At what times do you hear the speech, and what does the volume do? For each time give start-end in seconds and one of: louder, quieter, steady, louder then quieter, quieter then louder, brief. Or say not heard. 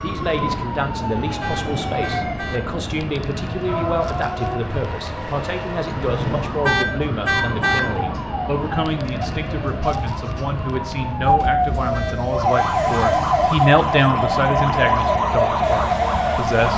0.0-16.7 louder.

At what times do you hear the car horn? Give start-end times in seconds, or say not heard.
1.4-2.6, 6.7-7.8, 11.9-13.1.